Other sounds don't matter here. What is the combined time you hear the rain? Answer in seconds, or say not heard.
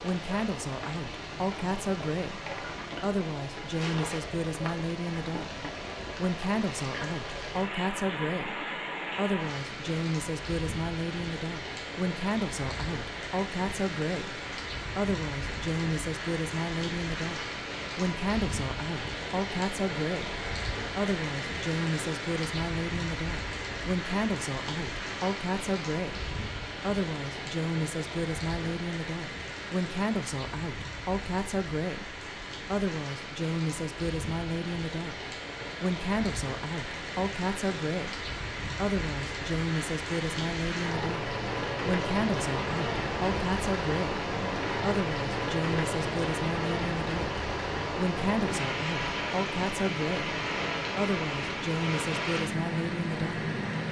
54 s.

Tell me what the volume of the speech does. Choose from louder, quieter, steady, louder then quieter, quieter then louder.
steady.